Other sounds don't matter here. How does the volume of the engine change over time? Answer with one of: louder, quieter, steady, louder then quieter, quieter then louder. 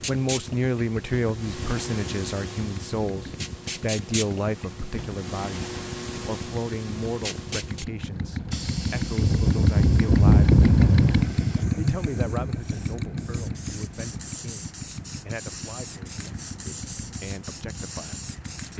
louder then quieter.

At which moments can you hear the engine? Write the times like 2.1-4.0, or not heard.
0.2-18.7.